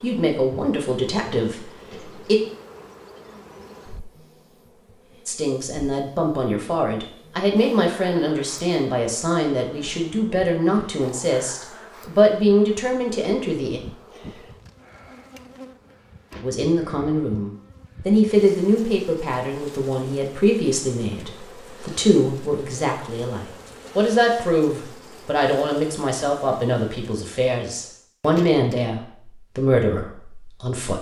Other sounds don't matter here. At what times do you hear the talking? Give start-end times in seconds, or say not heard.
0.0-2.4, 5.2-13.8, 16.4-30.9.